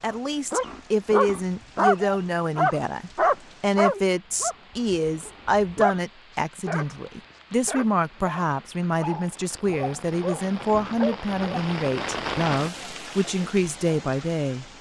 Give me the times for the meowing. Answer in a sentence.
You can't hear the meowing here.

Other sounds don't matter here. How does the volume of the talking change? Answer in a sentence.
The loudness of the talking stays about the same.